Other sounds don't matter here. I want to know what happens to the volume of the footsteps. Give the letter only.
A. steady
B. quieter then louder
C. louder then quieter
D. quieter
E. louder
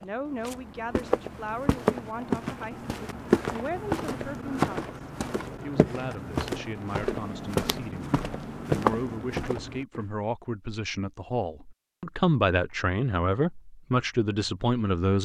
A.